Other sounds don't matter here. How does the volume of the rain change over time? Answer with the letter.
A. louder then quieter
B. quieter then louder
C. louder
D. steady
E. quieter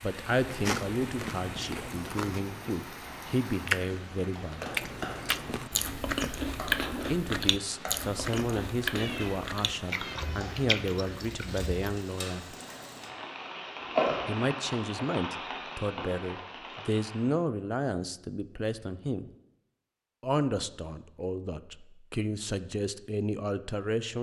C.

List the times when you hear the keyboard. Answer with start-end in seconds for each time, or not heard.
not heard.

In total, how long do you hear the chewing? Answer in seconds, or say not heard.
12 s.